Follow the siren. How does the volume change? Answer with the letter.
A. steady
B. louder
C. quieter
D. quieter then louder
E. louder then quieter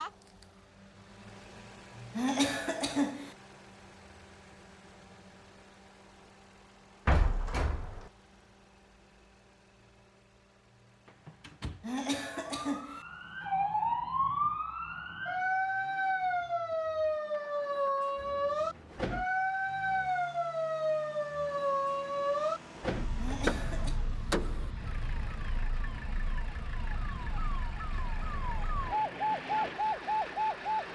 D.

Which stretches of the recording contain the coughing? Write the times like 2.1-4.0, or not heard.
2.1-3.3, 11.8-13.0, 23.1-24.0.